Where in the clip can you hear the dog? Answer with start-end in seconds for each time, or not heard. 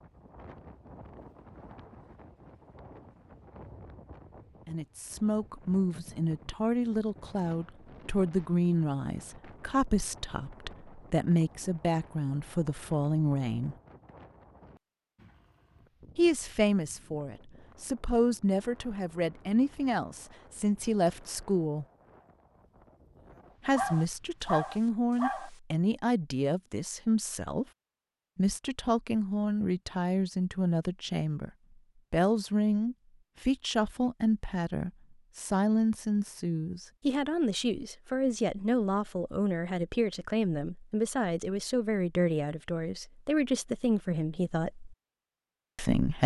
23.7-25.5.